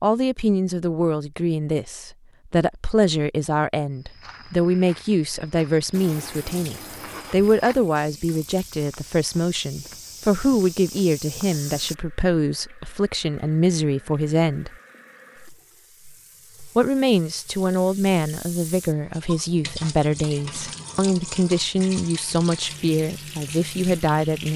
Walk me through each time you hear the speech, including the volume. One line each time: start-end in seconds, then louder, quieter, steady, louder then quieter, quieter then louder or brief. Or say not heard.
0.0-14.8 steady
16.8-24.5 steady.